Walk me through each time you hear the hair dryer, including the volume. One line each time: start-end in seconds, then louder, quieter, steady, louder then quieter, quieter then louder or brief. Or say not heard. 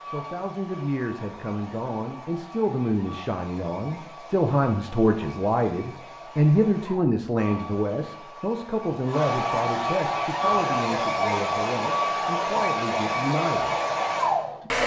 0.0-14.8 louder.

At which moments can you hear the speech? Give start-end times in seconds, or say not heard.
0.0-13.8.